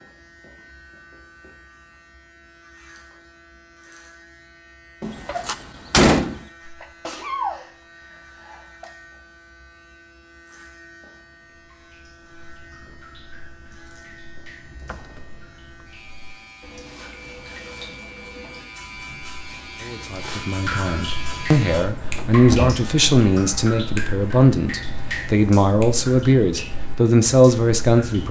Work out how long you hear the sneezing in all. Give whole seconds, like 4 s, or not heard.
2 s.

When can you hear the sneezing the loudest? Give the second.
7 s.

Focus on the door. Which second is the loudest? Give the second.
6 s.